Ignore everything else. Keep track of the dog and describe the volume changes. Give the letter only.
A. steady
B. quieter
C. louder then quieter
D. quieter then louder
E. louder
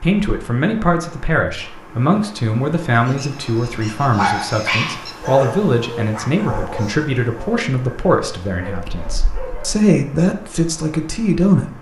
B.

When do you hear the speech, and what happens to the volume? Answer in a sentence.
You can hear the speech from 0.0 to 11.7 s, at a steady volume.